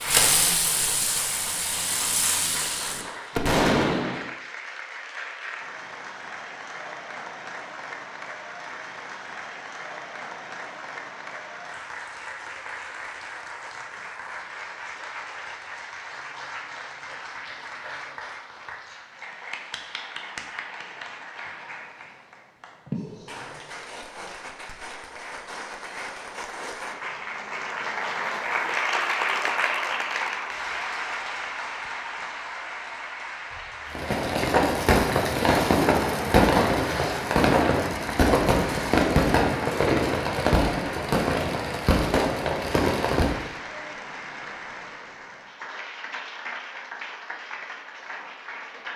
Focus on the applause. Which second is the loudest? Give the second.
29 s.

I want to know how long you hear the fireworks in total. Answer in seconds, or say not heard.
14 s.